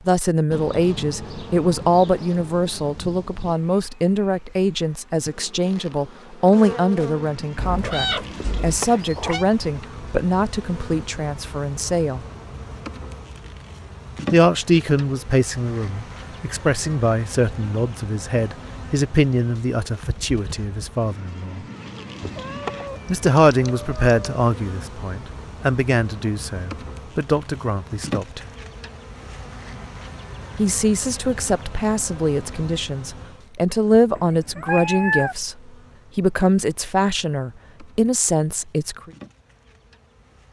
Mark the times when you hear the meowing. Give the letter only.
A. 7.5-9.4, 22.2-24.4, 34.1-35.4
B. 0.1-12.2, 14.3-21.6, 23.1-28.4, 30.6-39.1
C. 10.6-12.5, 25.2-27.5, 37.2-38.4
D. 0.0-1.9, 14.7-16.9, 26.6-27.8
A.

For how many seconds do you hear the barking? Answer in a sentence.
The barking can't be heard in this clip.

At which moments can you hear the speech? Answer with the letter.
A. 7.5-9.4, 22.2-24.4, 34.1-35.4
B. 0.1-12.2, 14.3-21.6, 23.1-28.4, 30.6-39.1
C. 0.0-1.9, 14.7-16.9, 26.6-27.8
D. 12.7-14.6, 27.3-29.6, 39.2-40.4
B.